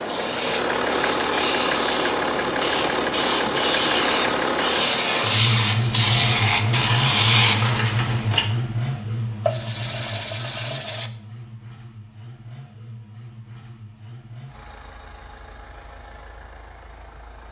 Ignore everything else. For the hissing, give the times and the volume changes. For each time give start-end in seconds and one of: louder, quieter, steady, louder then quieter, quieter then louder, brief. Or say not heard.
0.0-8.4 louder.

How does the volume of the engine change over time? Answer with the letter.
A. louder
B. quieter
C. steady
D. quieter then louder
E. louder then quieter
B.